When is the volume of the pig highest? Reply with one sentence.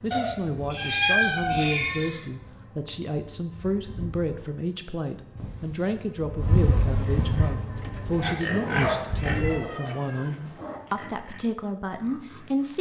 The volume of the pig peaks at 9 seconds.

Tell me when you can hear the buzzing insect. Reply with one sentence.
You can hear the buzzing insect from 0.0 to 9.6 s.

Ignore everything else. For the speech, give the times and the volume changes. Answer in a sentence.
The speech can be heard from 0.0 to 12.7 s, at a steady volume.